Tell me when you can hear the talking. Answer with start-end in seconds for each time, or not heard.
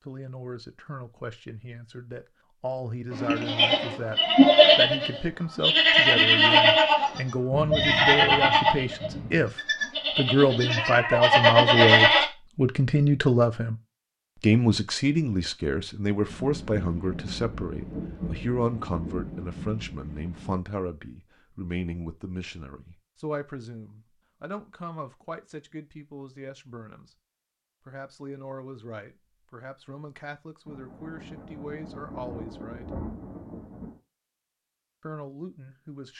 0.0-13.8, 14.4-27.1, 27.9-33.0, 35.0-36.1.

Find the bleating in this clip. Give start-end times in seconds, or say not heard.
3.1-12.2.